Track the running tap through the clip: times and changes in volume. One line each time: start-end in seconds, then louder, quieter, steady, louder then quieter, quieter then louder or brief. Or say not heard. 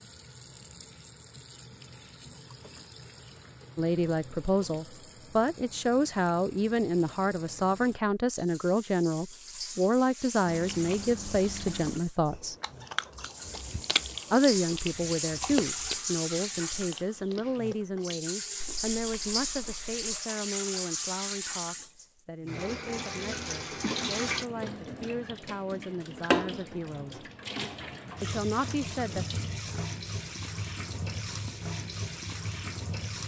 0.0-33.2 louder.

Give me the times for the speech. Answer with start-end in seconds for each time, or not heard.
3.8-12.6, 14.3-27.2, 28.2-29.2.